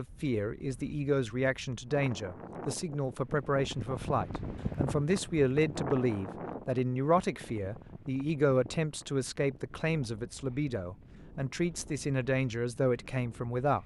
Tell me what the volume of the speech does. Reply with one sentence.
The volume of the speech stays about the same.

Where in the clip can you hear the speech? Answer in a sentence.
The speech can be heard from 0.0 to 13.8 s.